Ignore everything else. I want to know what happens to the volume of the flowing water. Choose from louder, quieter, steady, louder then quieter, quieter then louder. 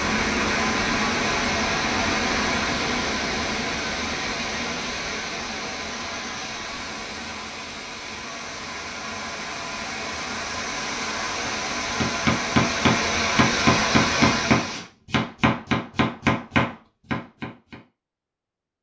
quieter then louder.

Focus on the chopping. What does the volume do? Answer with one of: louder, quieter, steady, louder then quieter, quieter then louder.
steady.